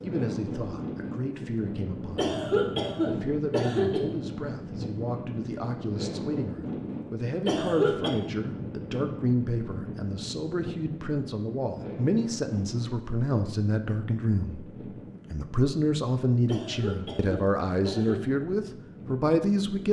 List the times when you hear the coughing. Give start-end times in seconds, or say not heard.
2.1-4.0, 7.5-8.2, 16.4-18.2.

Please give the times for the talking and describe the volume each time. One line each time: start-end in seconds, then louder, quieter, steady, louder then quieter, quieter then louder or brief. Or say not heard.
0.0-2.4 brief
3.0-19.8 louder.